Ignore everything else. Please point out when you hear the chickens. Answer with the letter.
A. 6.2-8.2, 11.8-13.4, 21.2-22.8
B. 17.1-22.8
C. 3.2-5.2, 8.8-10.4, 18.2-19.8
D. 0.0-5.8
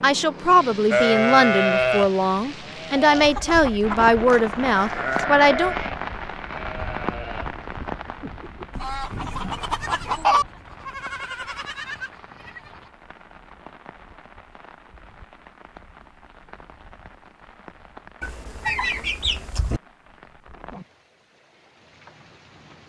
C.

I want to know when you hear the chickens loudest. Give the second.
10 s.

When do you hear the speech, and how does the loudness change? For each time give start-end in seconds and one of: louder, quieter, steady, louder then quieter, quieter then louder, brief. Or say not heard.
0.0-5.8 steady.